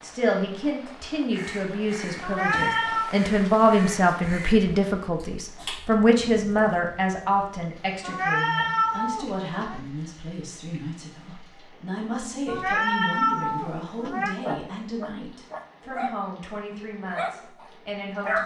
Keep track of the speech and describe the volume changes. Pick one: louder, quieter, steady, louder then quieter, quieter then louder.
quieter.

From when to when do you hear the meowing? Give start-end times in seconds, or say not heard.
2.2-3.1, 8.0-9.8, 12.4-14.3.